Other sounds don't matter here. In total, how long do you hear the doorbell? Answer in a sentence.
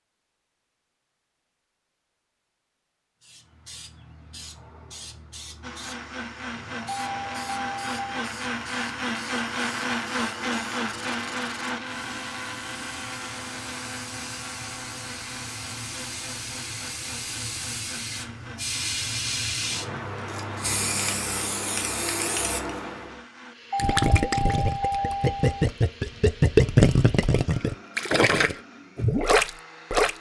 The doorbell can be heard for 3 seconds in total.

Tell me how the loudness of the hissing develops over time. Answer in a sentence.
The loudness of the hissing goes up.